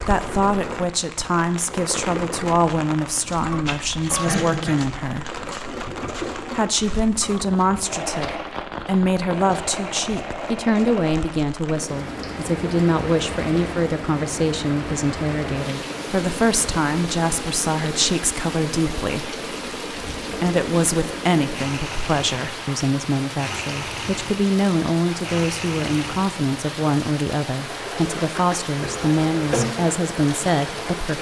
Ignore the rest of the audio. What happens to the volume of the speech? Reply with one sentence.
The volume of the speech stays about the same.